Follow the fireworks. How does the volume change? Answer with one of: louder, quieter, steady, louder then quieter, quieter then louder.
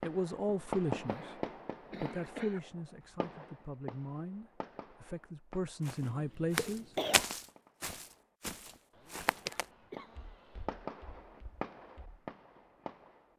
quieter then louder.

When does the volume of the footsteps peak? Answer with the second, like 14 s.
7 s.